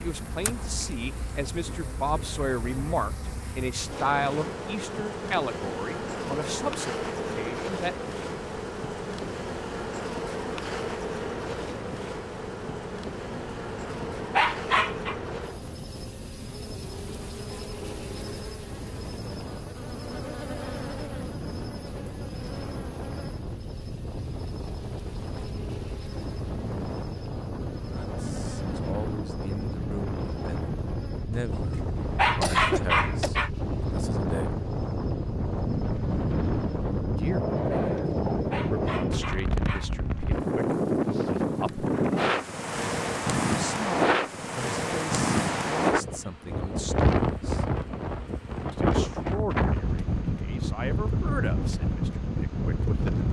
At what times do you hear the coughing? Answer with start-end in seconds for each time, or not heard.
31.9-33.3.